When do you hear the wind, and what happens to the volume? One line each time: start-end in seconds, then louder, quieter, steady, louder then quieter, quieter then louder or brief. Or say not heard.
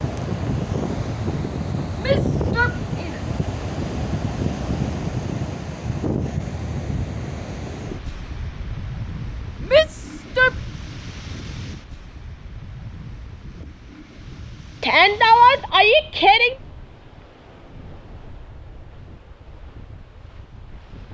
0.0-21.0 quieter.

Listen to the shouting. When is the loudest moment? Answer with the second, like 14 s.
15 s.